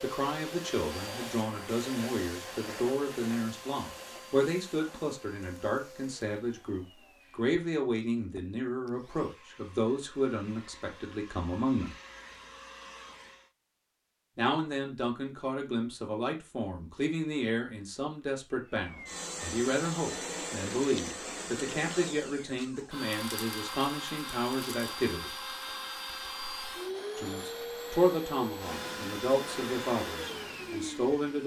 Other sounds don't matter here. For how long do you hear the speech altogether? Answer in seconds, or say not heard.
27 s.